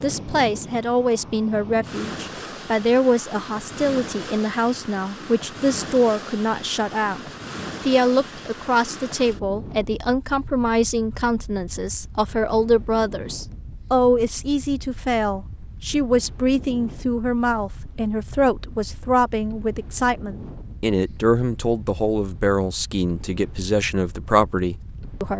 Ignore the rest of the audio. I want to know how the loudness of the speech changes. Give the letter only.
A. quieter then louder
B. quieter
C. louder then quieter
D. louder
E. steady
E.